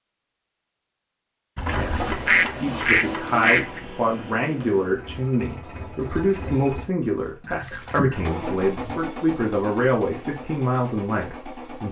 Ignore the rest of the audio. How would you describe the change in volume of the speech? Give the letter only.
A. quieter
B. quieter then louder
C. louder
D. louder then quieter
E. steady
E.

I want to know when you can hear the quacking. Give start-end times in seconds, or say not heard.
1.6-3.9, 7.4-9.1.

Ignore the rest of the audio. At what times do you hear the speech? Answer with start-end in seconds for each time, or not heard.
1.7-11.8.